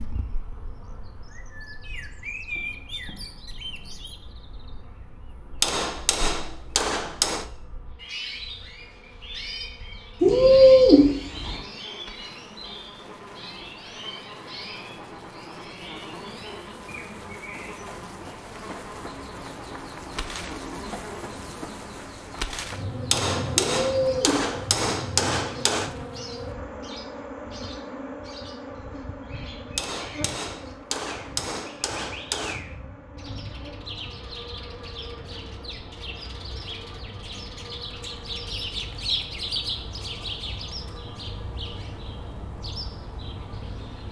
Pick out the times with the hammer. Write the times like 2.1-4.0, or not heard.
5.6-7.5, 23.1-25.9, 29.8-32.6.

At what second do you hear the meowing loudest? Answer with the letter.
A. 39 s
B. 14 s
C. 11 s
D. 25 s
C.